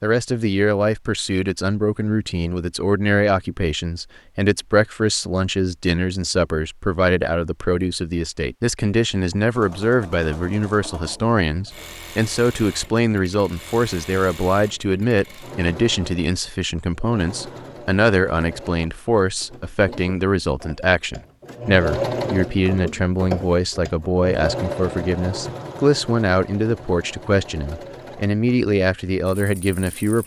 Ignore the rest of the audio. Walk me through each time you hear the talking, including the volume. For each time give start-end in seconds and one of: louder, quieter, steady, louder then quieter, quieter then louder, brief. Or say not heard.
0.0-30.2 steady.